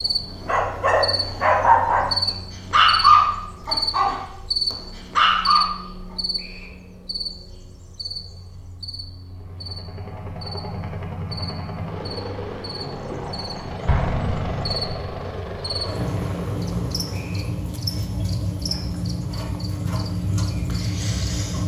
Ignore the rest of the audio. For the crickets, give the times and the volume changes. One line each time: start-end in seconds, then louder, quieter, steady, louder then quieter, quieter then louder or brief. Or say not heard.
0.0-21.6 quieter then louder.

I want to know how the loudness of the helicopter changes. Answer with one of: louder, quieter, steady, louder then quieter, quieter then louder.
steady.